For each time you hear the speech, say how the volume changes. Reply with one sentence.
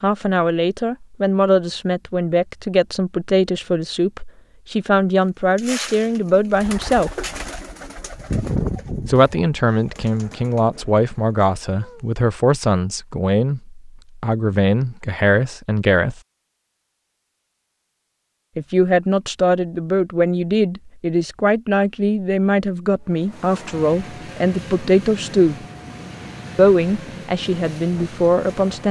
The speech can be heard from 0.0 to 7.2 s, at a steady volume; from 9.1 to 16.2 s, at a steady volume; from 18.6 to 25.6 s, at a steady volume; and briefly from 26.6 to 28.8 s.